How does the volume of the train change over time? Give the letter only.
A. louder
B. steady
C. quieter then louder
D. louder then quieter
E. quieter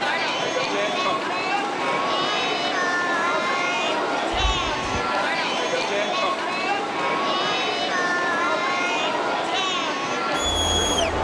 B.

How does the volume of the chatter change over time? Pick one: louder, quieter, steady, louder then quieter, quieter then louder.
steady.